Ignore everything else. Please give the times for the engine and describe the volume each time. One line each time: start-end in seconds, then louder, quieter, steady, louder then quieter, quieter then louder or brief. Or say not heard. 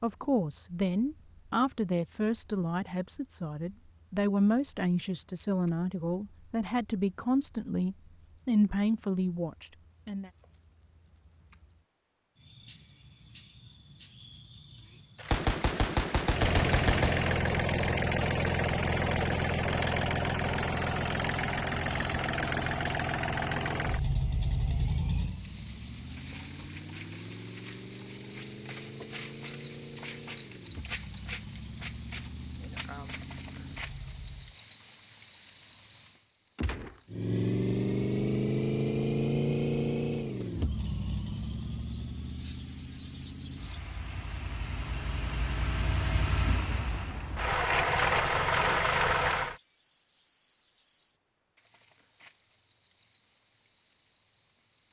16.2-34.6 quieter
37.1-49.5 quieter then louder.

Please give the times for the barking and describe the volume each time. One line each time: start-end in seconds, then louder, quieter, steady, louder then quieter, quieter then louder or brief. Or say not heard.
not heard.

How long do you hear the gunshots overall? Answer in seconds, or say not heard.
3 s.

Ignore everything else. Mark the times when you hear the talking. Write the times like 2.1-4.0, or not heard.
0.0-10.3.